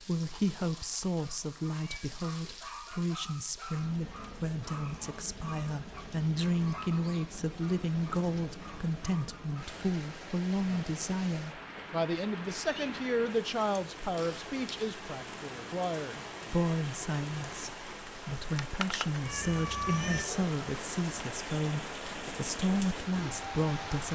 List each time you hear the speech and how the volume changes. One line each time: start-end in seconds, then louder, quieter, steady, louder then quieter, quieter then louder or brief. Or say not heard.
0.0-24.1 steady.